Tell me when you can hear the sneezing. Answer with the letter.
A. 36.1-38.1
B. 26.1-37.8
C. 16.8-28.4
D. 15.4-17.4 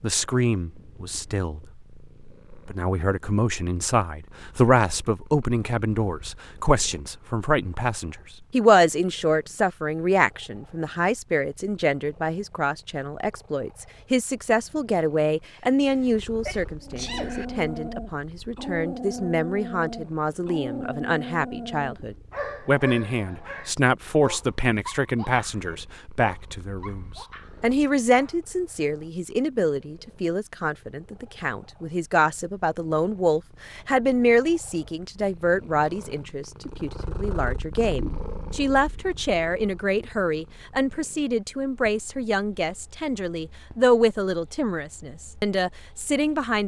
D.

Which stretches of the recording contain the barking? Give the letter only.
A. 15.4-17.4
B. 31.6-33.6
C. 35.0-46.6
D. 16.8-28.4
D.